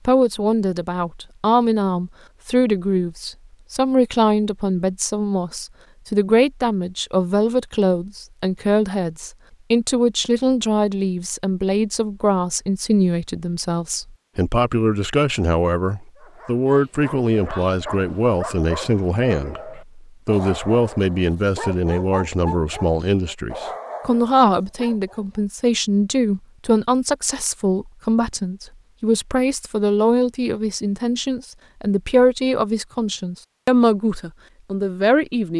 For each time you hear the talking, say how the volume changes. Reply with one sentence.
You can hear the talking from 0.1 to 35.5 s, at a steady volume.